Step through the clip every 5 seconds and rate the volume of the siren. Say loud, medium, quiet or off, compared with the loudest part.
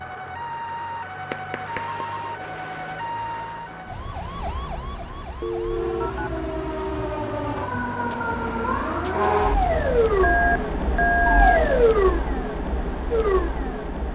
medium, loud, loud.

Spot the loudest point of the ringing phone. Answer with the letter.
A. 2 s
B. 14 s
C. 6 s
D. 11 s
D.